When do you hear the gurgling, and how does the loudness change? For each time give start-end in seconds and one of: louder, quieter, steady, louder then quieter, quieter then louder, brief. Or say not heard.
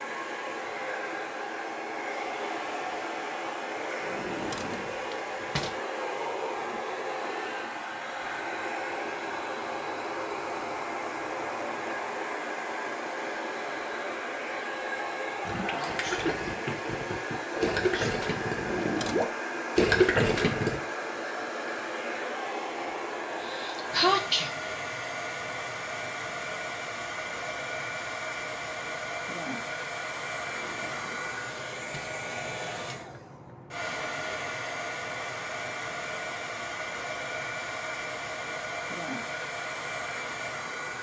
15.4-20.8 louder.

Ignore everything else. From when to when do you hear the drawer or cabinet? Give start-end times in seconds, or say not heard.
4.0-5.8, 18.5-19.3, 30.4-32.1.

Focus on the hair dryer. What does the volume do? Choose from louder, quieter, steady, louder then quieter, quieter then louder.
steady.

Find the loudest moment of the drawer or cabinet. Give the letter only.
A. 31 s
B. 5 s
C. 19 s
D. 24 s
C.